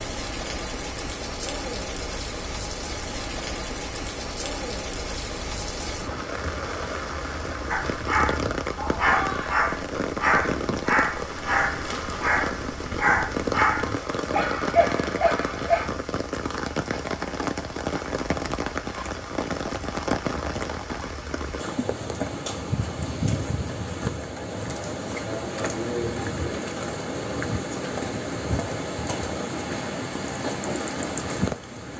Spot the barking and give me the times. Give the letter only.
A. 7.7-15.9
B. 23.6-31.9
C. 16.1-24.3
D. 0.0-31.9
A.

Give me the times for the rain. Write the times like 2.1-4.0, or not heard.
0.0-31.9.